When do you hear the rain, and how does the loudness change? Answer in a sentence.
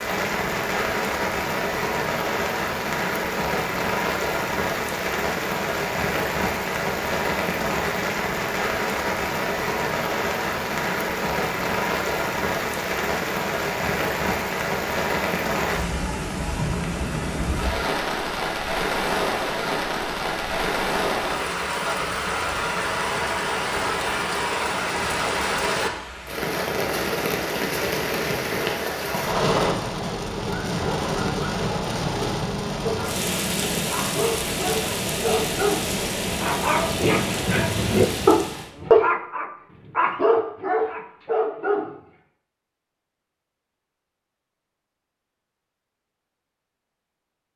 The rain can be heard from 0.0 to 38.7 s, at a steady volume.